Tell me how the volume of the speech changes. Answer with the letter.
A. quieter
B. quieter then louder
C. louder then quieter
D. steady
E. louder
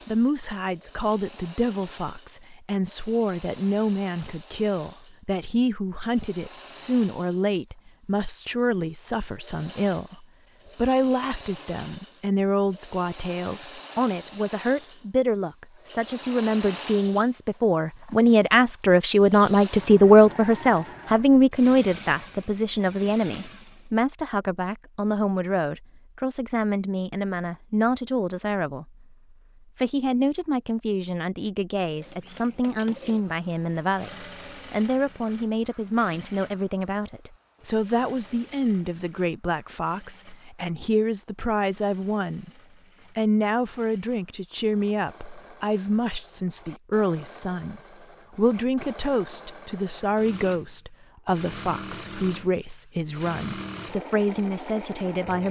C.